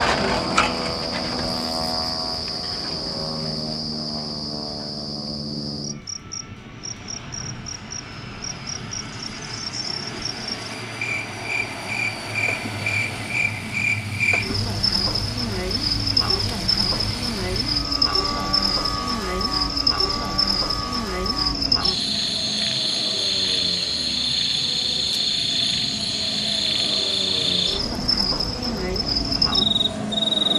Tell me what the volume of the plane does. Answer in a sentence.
The loudness of the plane stays about the same.